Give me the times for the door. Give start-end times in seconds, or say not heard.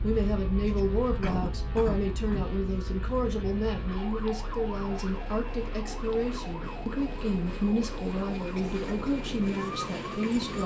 not heard.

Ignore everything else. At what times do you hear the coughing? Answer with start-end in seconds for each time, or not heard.
0.7-2.5, 8.6-9.1.